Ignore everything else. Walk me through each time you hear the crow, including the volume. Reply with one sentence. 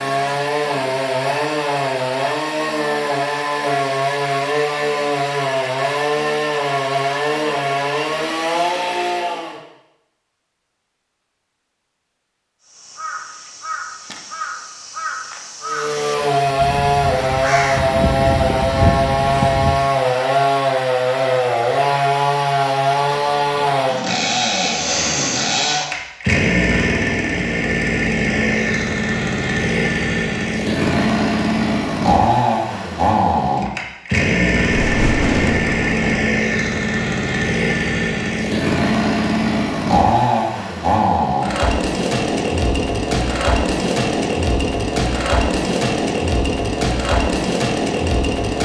The crow can be heard from 12.6 to 19.8 s, getting louder.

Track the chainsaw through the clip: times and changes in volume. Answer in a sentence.
You can hear the chainsaw from 0.0 to 9.6 s, at a steady volume; and from 15.6 to 48.6 s, at a steady volume.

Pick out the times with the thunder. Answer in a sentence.
The thunder can be heard from 34.7 to 36.2 s.